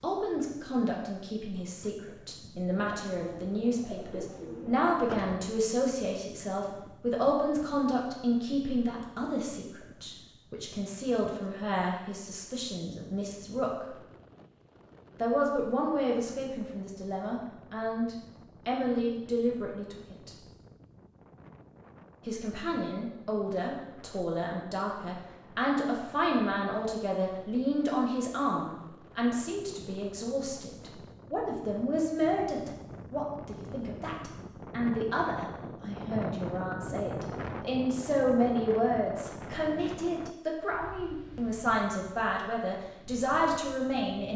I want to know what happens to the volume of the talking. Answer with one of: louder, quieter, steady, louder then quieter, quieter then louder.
steady.